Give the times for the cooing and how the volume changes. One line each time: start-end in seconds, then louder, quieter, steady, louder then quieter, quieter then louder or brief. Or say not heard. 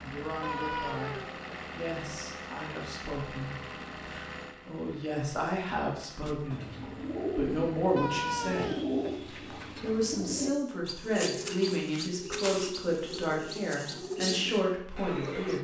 6.2-15.5 steady.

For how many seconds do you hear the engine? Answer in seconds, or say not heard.
10 s.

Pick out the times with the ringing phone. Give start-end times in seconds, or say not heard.
0.4-1.6, 8.0-9.1.